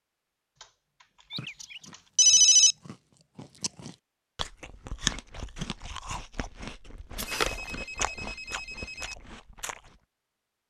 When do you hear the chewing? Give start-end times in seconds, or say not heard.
1.4-9.9.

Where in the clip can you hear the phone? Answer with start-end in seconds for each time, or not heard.
1.3-2.8, 7.2-9.2.